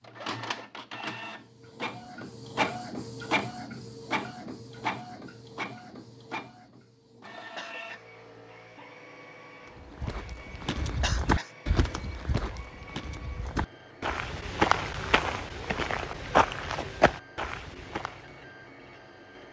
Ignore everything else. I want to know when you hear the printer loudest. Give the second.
3 s.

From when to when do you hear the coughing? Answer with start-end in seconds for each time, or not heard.
7.5-8.1, 11.0-11.5.